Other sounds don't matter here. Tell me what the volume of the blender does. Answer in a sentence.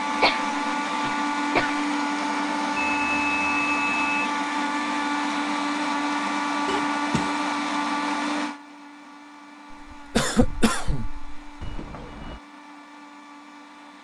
The volume of the blender goes down.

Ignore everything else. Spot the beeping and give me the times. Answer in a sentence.
The beeping can be heard from 2.8 to 4.3 s and from 11.6 to 12.4 s.